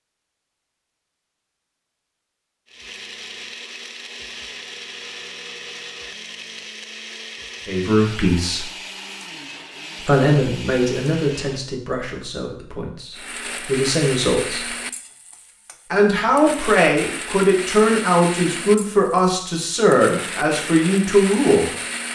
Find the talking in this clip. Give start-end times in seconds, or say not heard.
7.7-8.7, 10.1-14.8, 15.9-21.7.